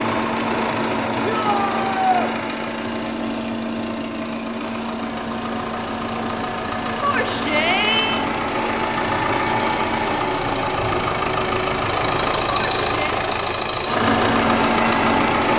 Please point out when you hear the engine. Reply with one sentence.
The engine can be heard from 0.0 to 15.5 s.